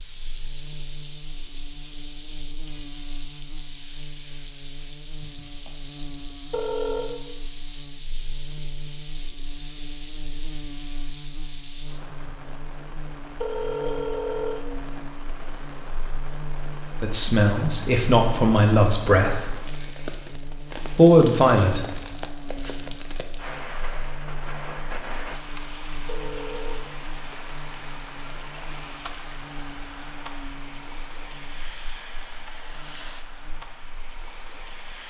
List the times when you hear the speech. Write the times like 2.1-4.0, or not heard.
17.0-19.6, 20.9-21.9.